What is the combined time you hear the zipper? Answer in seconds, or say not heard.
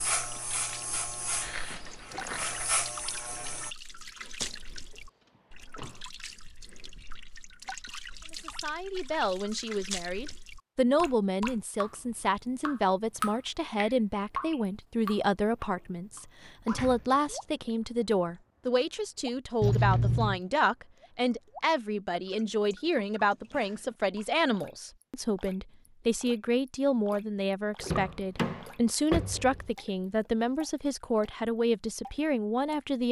2 s.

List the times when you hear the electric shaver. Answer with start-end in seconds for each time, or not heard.
0.0-3.8.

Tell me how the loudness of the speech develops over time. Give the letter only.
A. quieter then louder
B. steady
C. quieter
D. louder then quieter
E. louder
B.